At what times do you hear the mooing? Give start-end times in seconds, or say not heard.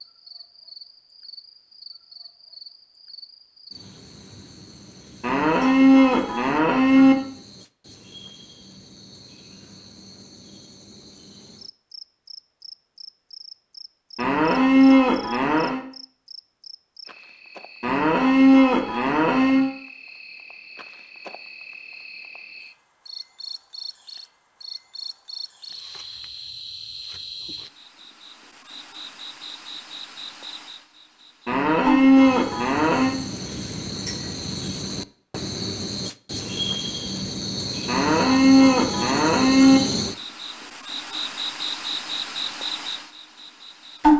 5.2-7.2, 14.2-15.8, 17.8-19.7, 31.4-33.1, 37.9-39.8.